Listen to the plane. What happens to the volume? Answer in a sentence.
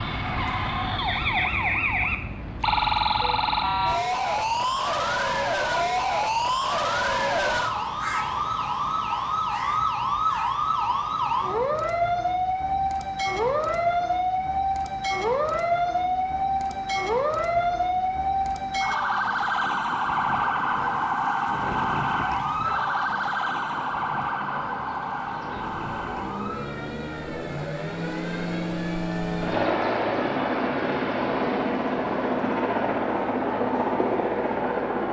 The loudness of the plane goes up.